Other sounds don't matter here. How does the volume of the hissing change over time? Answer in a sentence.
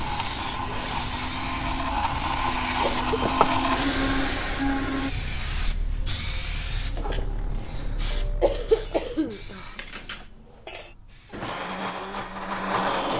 The volume of the hissing goes down.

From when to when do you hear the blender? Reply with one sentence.
You can hear the blender from 0.0 to 5.1 s and from 11.3 to 13.1 s.